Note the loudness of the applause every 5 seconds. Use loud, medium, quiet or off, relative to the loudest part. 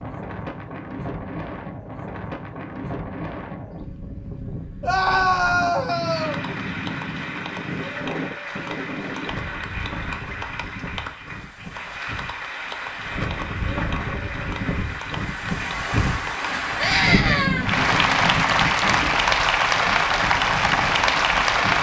off, quiet, quiet, loud, loud.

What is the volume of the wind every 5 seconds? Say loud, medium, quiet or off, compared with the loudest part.
medium, medium, medium, loud, medium.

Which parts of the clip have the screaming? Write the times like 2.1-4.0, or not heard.
4.8-6.4, 16.8-17.7.